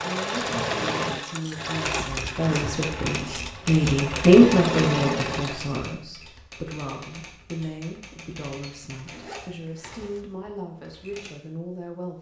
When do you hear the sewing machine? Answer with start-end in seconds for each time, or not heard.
0.0-5.8.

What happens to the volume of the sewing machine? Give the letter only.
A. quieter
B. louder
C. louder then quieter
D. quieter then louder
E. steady
D.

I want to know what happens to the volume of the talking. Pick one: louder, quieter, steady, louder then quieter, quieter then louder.
louder then quieter.